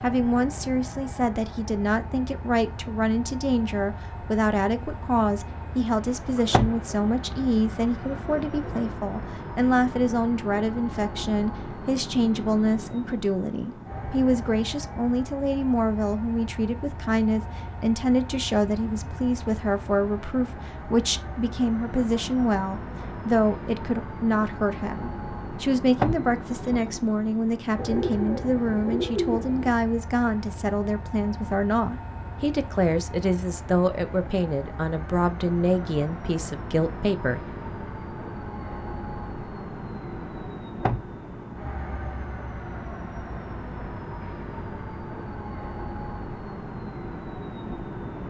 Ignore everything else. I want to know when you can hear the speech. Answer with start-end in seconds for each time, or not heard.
0.0-37.4.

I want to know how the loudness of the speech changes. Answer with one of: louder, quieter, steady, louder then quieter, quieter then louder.
steady.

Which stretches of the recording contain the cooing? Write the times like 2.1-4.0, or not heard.
6.0-8.9, 27.8-29.7.